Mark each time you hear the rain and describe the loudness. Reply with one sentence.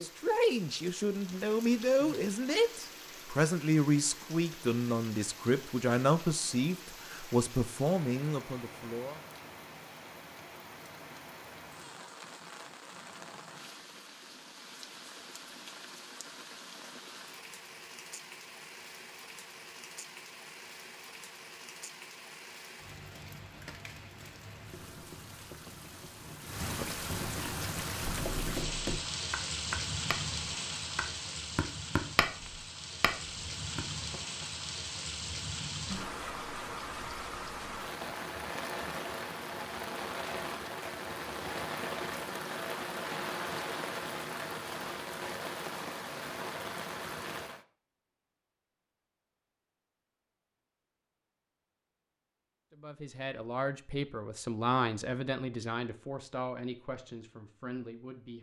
The rain can be heard from 0.0 to 47.6 s, getting louder.